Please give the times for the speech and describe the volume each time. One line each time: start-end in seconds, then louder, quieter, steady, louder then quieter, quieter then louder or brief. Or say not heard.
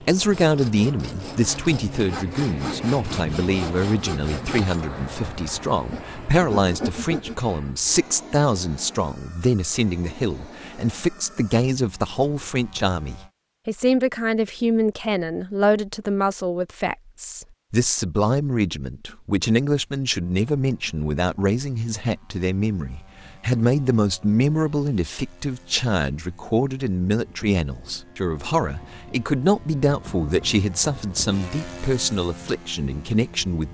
0.0-33.6 steady.